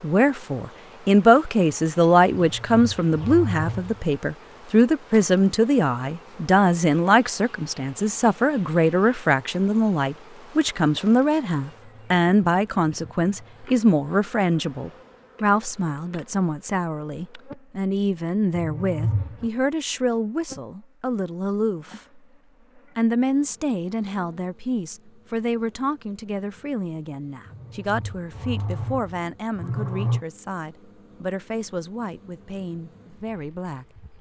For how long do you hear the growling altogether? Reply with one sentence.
You can hear the growling for 5 seconds altogether.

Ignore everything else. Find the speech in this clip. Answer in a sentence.
The speech can be heard from 0.0 to 22.2 s and from 22.9 to 34.0 s.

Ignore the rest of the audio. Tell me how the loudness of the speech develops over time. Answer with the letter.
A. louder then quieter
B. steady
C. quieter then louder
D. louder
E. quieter
E.